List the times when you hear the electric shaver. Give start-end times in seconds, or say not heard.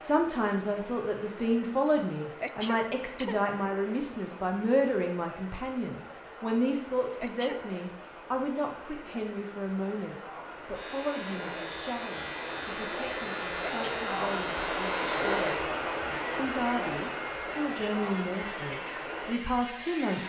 10.7-20.2.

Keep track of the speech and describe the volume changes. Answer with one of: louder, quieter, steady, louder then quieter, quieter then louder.
quieter then louder.